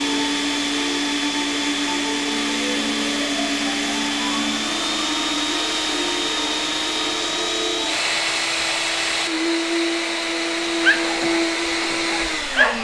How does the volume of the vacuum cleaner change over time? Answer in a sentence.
The volume of the vacuum cleaner stays about the same.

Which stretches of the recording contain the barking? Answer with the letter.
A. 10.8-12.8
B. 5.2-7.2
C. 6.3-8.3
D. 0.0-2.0
A.